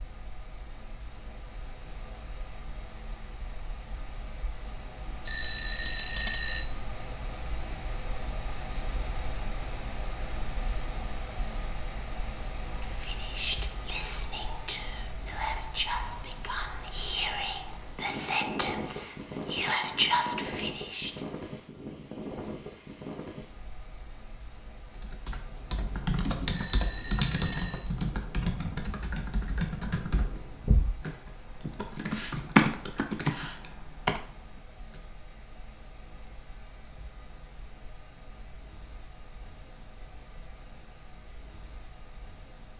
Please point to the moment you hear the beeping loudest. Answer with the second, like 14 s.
6 s.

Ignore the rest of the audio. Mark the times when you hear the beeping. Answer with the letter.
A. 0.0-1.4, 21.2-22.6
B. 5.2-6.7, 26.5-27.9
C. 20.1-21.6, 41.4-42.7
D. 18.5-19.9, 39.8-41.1
B.